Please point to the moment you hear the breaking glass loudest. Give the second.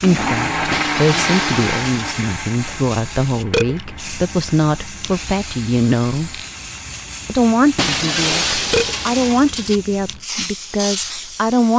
8 s.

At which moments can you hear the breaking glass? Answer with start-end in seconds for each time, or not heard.
0.7-2.2, 7.8-9.8.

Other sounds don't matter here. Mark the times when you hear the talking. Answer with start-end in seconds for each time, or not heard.
0.0-6.3, 7.2-11.7.